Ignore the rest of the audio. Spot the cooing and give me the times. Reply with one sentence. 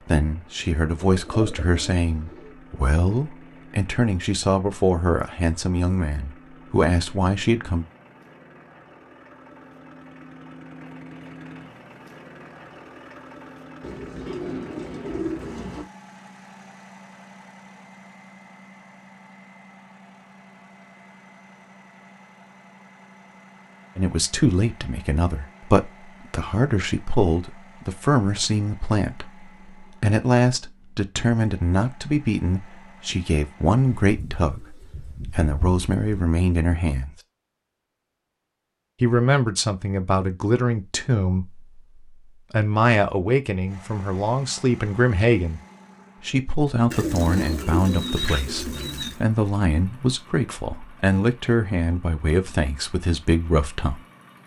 The cooing can be heard from 1.1 to 2.5 s, from 13.8 to 15.8 s, from 34.0 to 36.2 s and from 46.9 to 49.1 s.